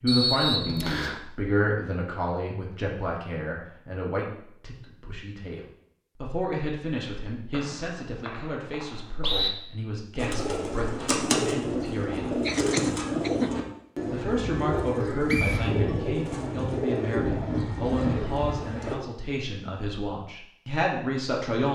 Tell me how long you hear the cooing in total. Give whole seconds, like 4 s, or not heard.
9 s.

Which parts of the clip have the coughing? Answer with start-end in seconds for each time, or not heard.
12.4-13.6.